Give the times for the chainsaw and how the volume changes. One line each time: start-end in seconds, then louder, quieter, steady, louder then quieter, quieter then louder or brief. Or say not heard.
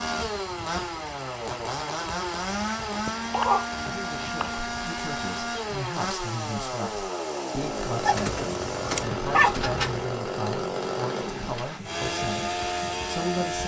0.0-13.6 steady.